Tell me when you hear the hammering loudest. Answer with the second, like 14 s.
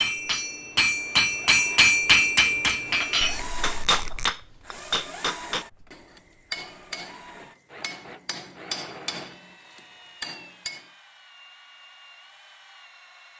2 s.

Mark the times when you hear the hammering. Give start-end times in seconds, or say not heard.
0.0-10.9.